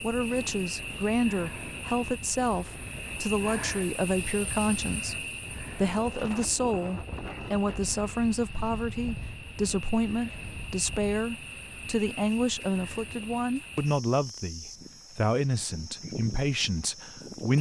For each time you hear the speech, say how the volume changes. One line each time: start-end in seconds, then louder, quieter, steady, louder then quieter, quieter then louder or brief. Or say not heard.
0.0-17.5 steady.